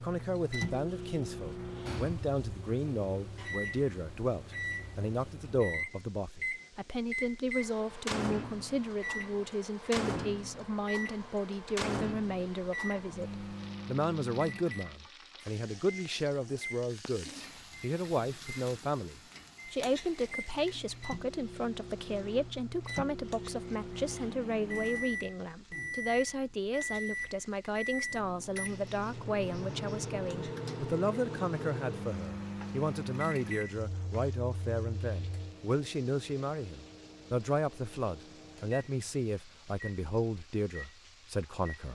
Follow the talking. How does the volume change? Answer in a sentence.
The volume of the talking stays about the same.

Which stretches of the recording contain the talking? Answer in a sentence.
The talking can be heard from 0.0 to 41.9 s.